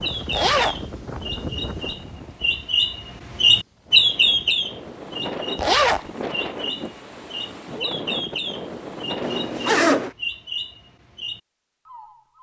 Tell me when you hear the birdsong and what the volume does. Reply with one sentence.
The birdsong can be heard from 0.0 to 12.3 s, getting louder then quieter.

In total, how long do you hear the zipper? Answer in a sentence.
The zipper can be heard for 2 seconds in total.